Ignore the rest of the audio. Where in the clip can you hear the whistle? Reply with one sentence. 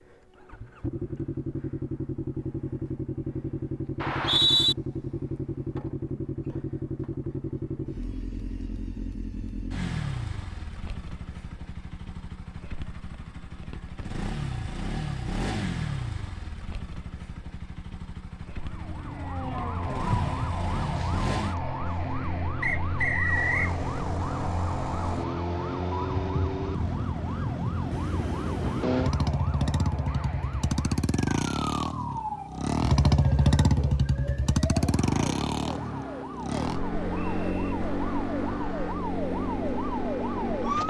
The whistle can be heard from 4.0 to 4.8 s, from 22.6 to 23.8 s and from 36.5 to 37.6 s.